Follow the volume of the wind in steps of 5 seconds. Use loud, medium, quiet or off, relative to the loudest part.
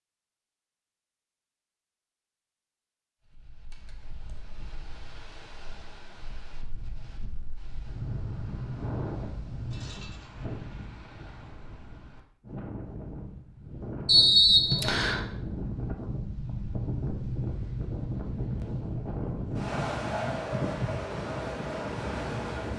quiet, medium, medium, loud, loud.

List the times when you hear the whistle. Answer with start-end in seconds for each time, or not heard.
14.1-15.2.